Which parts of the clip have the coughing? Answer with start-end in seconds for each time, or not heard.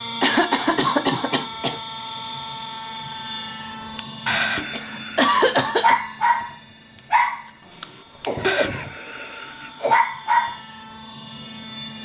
0.2-1.8, 4.7-6.0, 8.2-9.9.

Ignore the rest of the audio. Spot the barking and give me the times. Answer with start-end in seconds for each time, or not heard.
4.0-10.6.